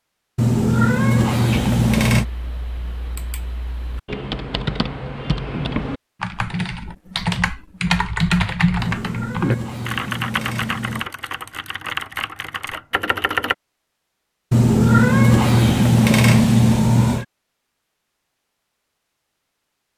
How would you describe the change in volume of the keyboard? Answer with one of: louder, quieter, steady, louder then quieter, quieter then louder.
louder then quieter.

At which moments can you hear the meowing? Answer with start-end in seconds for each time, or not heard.
0.3-2.2, 8.8-11.1, 14.5-17.2.